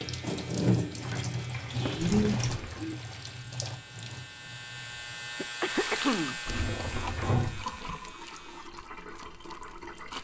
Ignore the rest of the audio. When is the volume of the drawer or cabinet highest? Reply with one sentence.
The volume of the drawer or cabinet peaks at 7 seconds.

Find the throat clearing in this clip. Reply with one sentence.
The throat clearing can be heard from 1.7 to 3.0 s and from 5.3 to 6.4 s.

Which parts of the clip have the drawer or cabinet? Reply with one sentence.
The drawer or cabinet can be heard from 2.1 to 2.9 s and from 6.5 to 8.1 s.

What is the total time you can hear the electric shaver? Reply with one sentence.
You can hear the electric shaver for 9 seconds altogether.